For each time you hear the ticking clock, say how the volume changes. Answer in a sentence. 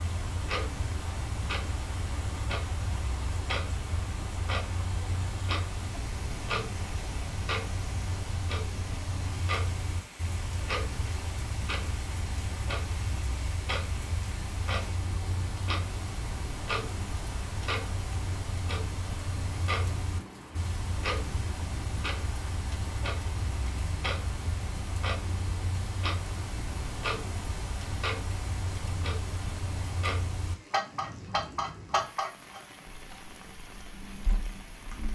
You can hear the ticking clock from 0.0 to 35.0 s, at a steady volume.